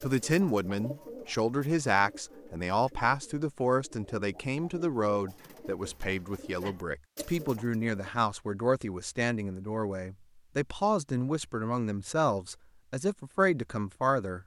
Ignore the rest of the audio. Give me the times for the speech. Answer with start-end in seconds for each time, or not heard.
0.0-14.4.